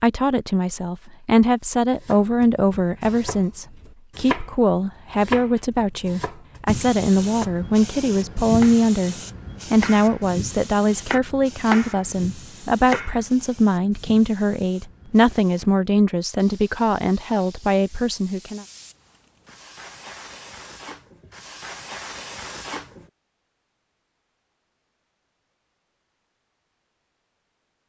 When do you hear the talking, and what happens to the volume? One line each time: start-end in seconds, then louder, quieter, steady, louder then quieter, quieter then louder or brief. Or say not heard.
0.0-18.6 steady.